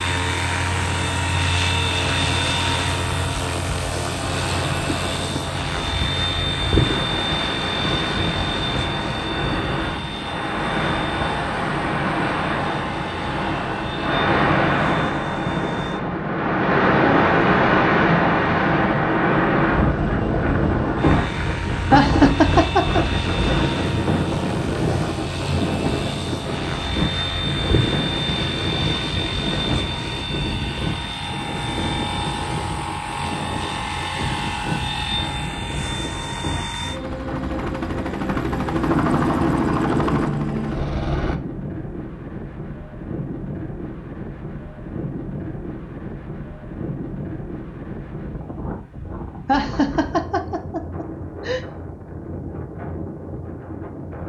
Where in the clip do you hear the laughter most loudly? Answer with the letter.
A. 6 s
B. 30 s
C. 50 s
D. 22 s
D.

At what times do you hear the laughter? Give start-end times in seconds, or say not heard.
21.9-23.0, 49.5-51.6.